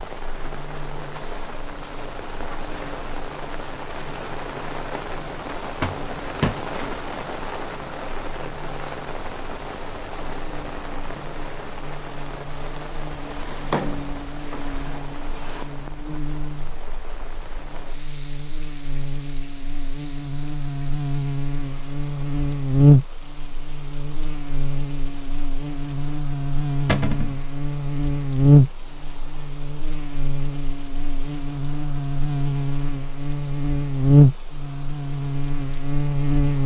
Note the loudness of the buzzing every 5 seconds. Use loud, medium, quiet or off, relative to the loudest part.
quiet, quiet, quiet, quiet, loud, loud, loud, loud.